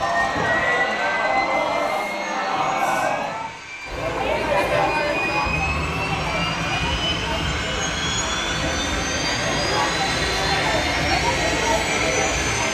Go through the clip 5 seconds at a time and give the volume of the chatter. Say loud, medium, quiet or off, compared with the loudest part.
loud, medium, loud.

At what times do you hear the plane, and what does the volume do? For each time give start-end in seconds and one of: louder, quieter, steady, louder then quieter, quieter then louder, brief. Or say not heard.
0.0-12.6 quieter then louder.